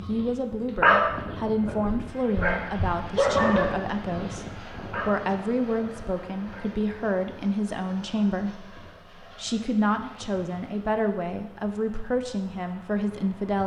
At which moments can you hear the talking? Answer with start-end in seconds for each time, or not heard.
0.0-13.6.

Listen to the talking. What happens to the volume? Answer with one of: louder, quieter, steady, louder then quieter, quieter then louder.
steady.